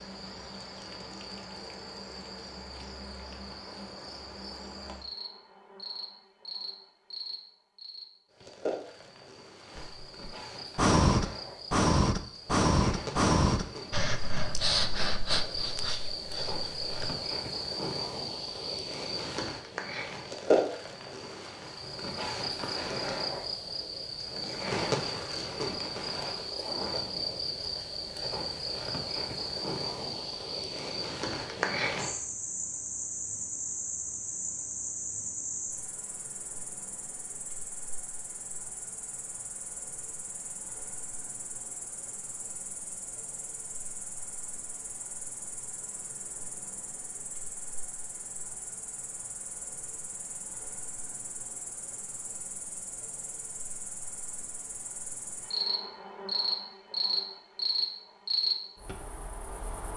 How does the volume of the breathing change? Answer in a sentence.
The volume of the breathing goes down.